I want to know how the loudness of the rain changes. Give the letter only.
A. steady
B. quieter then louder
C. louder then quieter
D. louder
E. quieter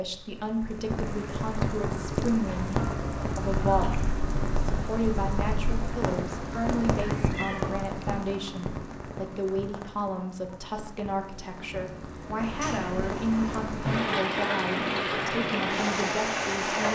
B.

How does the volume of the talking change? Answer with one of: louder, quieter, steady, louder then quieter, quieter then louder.
steady.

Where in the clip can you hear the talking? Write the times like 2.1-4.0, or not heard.
0.0-16.9.